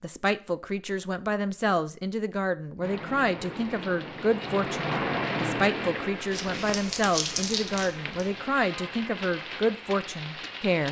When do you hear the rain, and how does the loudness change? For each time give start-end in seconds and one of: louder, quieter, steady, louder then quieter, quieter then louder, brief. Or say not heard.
2.8-10.8 louder then quieter.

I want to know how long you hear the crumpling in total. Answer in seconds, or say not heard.
2 s.